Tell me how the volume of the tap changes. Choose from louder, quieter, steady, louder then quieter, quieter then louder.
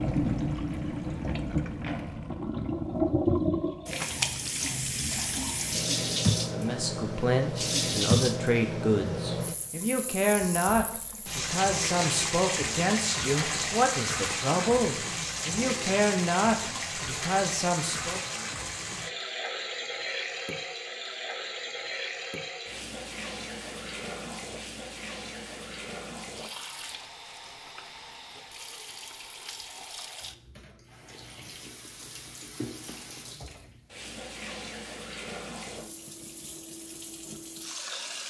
quieter.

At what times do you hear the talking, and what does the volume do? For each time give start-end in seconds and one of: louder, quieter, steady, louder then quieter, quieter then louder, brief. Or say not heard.
6.5-18.2 steady.